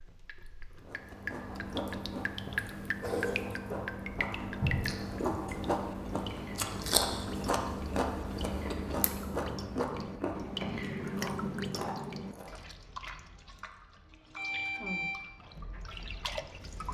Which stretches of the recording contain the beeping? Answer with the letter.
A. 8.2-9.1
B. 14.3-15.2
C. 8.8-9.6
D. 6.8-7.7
B.